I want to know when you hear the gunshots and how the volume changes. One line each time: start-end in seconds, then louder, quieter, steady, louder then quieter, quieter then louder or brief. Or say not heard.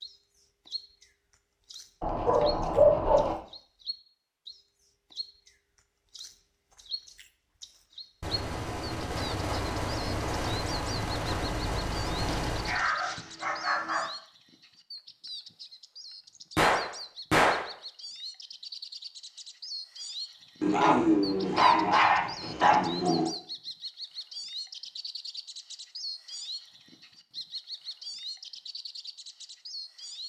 8.2-12.8 steady
16.6-17.7 brief.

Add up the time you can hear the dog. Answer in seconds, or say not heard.
6 s.